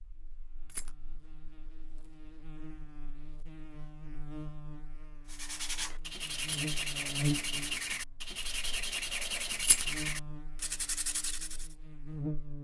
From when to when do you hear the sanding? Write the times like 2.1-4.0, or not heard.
5.2-11.8.